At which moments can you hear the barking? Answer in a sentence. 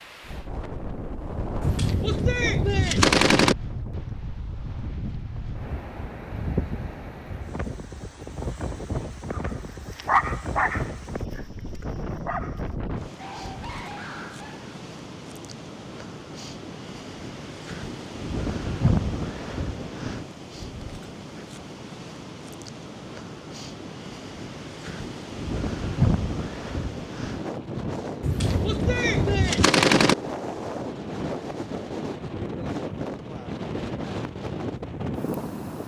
The barking can be heard from 9.3 to 14.8 s.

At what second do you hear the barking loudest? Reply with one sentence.
The volume of the barking peaks at 10 seconds.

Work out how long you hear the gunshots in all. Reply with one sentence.
The gunshots can be heard for 4 seconds in total.